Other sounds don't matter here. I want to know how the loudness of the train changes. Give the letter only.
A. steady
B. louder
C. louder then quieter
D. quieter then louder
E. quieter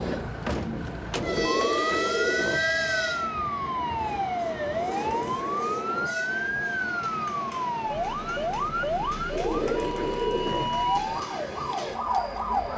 E.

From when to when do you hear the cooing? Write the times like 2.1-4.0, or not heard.
1.2-2.6, 4.8-6.1, 9.3-10.7.